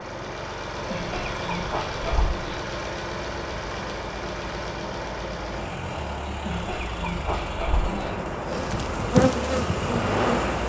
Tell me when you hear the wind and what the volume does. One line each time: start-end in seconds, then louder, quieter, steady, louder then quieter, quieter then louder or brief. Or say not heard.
0.0-10.6 louder.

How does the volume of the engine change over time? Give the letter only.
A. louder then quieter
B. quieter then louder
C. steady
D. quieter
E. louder
C.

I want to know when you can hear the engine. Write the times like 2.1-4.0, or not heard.
0.0-10.6.